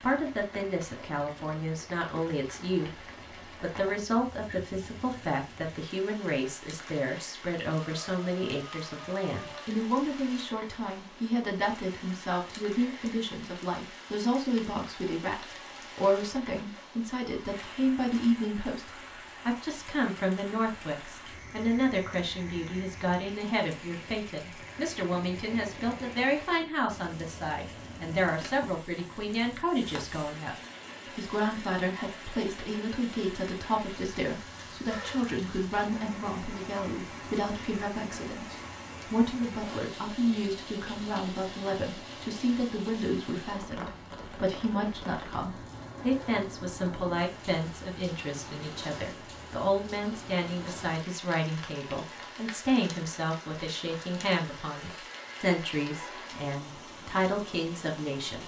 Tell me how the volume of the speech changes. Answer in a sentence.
The volume of the speech stays about the same.